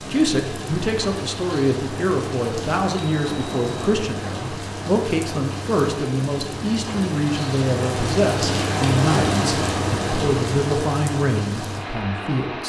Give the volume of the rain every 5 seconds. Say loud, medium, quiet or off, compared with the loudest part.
medium, loud, loud.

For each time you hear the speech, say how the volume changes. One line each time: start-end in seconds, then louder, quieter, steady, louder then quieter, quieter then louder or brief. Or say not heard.
0.1-12.6 steady.